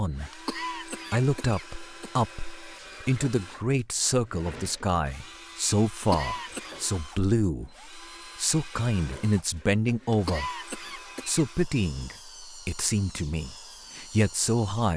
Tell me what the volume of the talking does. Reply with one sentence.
The volume of the talking stays about the same.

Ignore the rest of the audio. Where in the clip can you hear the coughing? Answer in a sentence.
The coughing can be heard from 0.3 to 2.2 s, from 6.0 to 6.8 s and from 10.1 to 11.4 s.